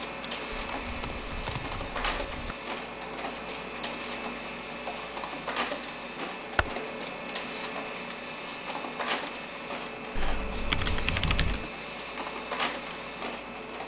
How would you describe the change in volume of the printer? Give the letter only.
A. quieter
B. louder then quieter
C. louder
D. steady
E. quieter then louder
D.